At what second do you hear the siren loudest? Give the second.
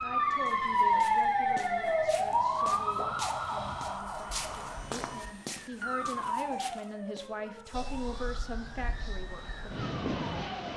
1 s.